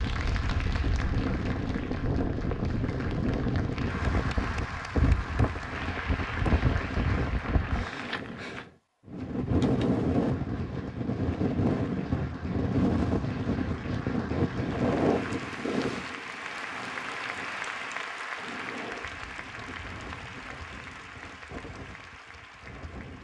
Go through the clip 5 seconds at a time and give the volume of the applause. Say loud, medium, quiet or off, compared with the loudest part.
loud, loud, medium, loud, medium.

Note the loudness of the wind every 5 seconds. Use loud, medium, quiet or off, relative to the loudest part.
loud, loud, loud, medium, quiet.